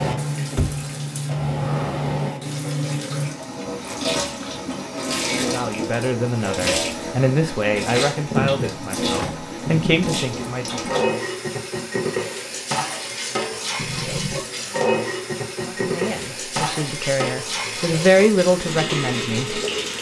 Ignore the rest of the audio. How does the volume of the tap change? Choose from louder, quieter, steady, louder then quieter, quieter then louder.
steady.